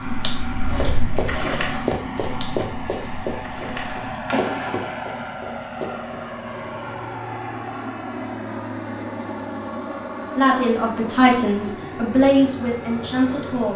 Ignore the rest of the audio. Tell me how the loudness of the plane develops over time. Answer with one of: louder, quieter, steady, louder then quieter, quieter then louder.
steady.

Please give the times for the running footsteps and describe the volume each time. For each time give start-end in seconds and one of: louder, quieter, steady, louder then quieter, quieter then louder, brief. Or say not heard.
0.8-6.2 quieter.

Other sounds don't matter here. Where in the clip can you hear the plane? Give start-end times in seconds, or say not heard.
0.0-13.7.